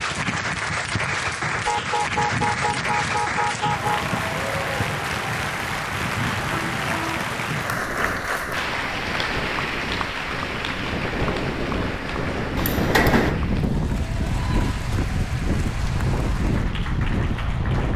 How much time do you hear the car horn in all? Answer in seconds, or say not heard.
4 s.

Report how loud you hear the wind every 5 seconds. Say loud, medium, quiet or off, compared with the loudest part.
medium, medium, loud, loud.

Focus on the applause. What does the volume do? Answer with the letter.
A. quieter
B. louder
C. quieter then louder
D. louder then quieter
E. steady
A.